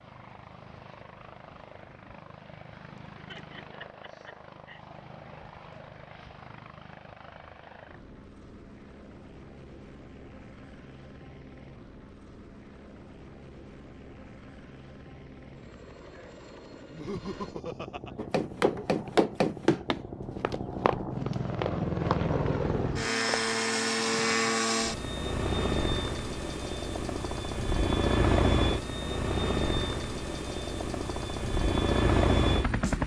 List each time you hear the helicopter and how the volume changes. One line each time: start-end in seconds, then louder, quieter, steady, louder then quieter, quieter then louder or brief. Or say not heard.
0.0-33.0 louder.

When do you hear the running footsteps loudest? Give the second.
19 s.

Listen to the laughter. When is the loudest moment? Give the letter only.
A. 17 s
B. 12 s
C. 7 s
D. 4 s
A.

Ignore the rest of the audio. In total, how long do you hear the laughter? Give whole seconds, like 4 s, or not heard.
3 s.